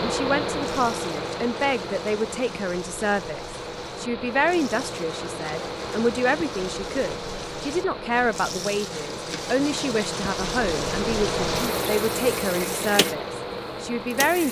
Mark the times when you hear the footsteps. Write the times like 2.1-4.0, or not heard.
not heard.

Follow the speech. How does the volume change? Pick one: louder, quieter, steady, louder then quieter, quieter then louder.
steady.